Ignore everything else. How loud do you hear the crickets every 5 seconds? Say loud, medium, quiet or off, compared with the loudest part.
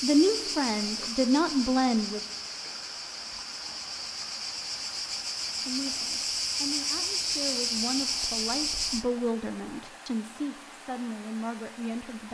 medium, loud, off.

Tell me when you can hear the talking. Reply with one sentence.
The talking can be heard from 0.0 to 2.2 s and from 5.7 to 12.2 s.